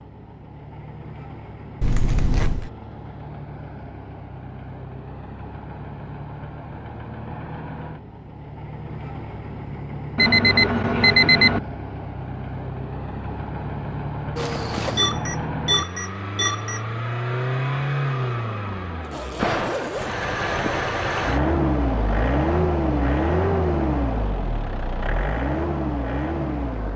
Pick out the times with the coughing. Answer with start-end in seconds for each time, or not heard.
not heard.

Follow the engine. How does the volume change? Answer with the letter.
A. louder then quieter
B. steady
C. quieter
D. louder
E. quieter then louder
D.